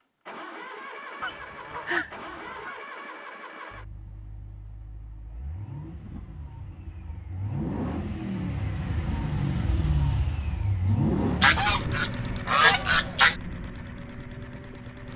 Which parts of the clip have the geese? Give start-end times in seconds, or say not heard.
1.2-2.8, 11.4-13.3.